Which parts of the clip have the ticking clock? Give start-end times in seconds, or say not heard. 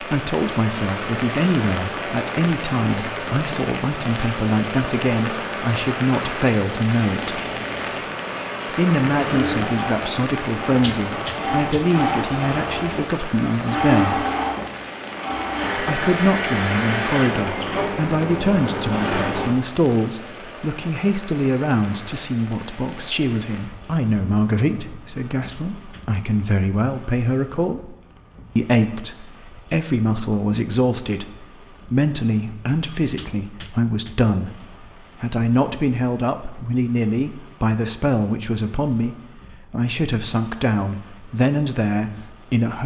not heard.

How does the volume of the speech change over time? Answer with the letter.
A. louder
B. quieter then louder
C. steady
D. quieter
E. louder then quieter
C.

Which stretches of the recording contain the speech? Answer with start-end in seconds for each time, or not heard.
0.0-7.4, 8.7-14.2, 15.8-27.9, 28.6-42.8.